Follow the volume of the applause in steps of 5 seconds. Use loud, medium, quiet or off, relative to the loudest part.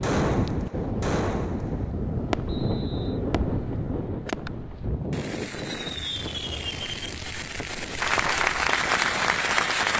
off, loud.